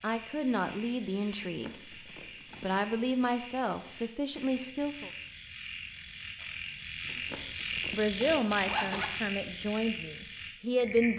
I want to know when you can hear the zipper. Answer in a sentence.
You can hear the zipper from 1.4 to 2.9 s and from 7.0 to 9.1 s.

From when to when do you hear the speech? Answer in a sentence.
You can hear the speech from 0.0 to 1.8 s, from 2.6 to 5.1 s and from 7.2 to 11.1 s.